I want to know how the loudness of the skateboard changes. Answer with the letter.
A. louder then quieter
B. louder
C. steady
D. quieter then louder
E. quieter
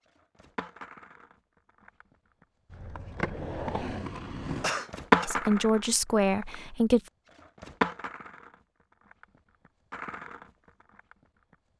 A.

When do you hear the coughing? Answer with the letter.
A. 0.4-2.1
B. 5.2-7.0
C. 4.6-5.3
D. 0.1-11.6
C.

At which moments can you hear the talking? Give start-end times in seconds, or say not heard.
5.2-7.0.